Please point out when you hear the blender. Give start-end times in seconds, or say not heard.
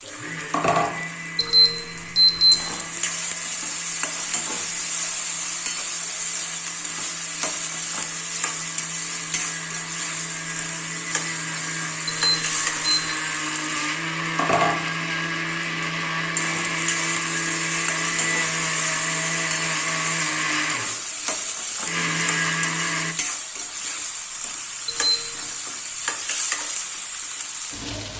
0.0-23.1.